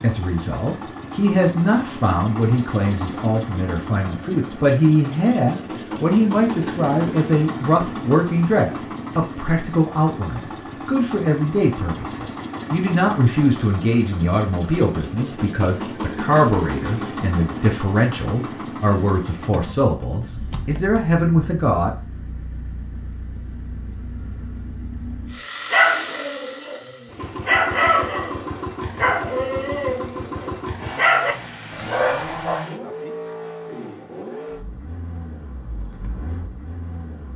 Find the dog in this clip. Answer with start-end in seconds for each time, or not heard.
25.7-32.6.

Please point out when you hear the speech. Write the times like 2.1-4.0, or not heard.
0.0-21.9.